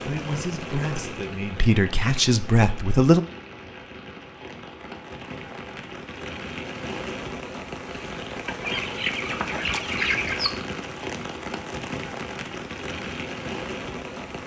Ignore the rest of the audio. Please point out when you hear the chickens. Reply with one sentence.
The chickens can be heard from 8.4 to 10.5 s.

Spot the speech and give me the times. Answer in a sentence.
You can hear the speech from 0.1 to 3.2 s.